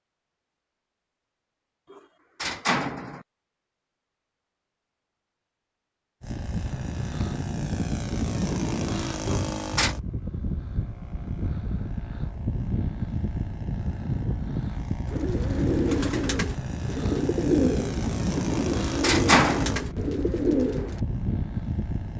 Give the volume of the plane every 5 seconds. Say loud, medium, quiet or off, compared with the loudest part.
off, loud, loud, loud, loud.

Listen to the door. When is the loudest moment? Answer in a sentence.
The loudest moment of the door is at 19 seconds.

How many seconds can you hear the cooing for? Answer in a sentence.
You can hear the cooing for 6 seconds altogether.